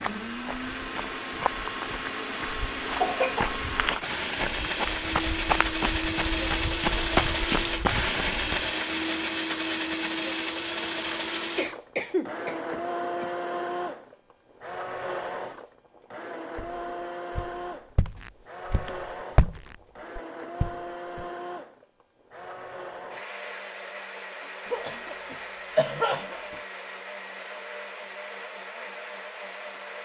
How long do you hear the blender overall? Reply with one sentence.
The blender can be heard for 30 seconds in total.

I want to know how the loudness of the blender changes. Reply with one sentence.
The volume of the blender goes down.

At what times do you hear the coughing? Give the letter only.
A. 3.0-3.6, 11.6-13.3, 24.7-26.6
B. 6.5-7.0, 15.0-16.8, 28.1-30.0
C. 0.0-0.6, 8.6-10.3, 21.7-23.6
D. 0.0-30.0
A.